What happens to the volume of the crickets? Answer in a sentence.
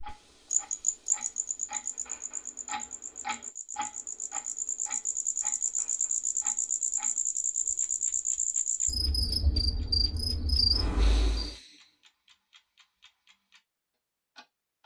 The loudness of the crickets goes down, then up.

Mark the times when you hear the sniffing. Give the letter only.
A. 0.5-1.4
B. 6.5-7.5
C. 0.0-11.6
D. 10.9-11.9
D.